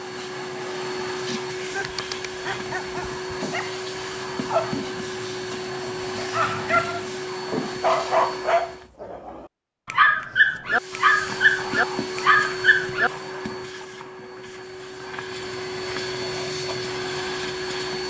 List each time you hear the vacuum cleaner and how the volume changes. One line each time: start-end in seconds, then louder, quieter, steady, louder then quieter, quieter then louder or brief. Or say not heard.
0.0-8.9 steady
10.7-18.0 quieter then louder.